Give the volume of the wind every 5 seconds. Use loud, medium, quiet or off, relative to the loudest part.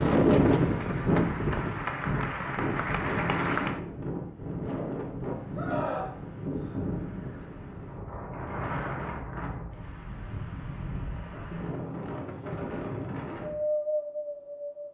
loud, medium, medium.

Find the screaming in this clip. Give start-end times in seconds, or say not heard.
5.5-6.8.